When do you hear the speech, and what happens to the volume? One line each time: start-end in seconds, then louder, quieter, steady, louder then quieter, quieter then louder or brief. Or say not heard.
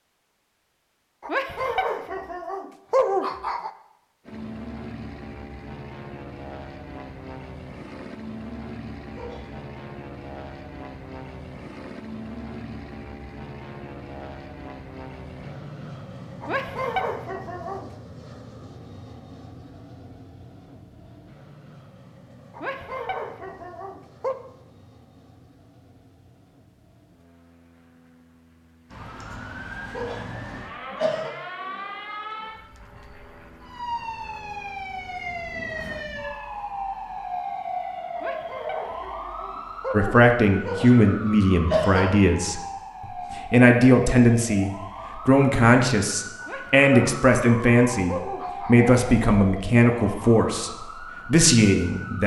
39.9-52.2 steady.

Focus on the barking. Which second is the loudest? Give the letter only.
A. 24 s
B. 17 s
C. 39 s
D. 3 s
D.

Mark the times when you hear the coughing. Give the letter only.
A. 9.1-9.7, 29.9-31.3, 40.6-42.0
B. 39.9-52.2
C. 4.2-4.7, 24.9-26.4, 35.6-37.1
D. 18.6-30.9
A.